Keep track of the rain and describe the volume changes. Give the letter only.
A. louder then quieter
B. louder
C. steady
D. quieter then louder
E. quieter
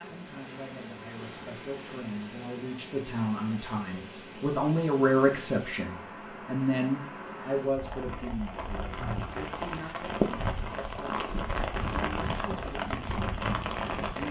B.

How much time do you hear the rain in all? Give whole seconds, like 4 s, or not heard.
14 s.